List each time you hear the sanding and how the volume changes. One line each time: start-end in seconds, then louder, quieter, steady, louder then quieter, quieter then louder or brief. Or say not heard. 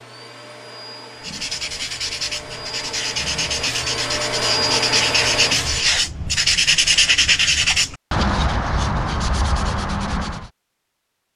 1.2-10.5 louder then quieter.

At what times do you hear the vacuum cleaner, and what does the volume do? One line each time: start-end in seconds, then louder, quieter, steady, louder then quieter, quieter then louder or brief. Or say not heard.
0.0-6.0 louder.